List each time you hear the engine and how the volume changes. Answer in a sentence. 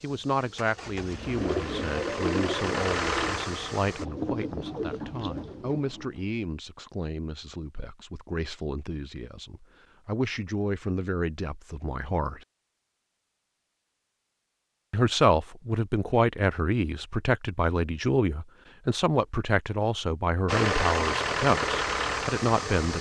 You can hear the engine from 0.0 to 4.0 s, getting louder; and briefly from 20.4 to 22.9 s.